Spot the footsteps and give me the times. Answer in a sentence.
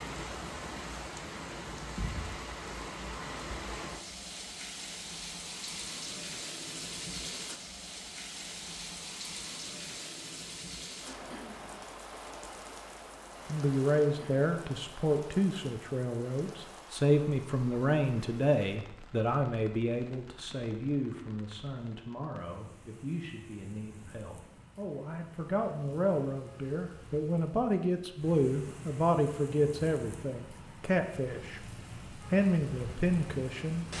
The footsteps can't be heard in this clip.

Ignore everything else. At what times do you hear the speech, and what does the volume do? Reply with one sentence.
You can hear the speech from 13.4 to 33.9 s, getting quieter then louder.